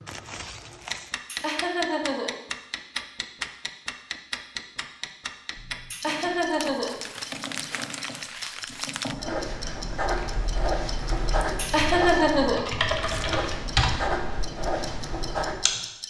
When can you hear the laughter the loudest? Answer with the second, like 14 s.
12 s.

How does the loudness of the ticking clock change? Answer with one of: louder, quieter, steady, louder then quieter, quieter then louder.
quieter.